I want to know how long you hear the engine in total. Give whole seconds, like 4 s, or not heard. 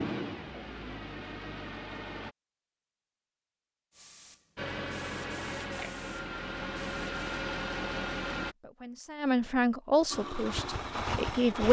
8 s.